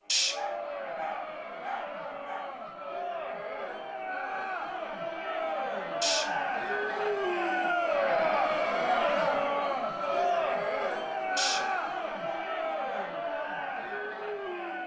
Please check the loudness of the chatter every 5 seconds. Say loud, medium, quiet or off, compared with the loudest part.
medium, loud, loud.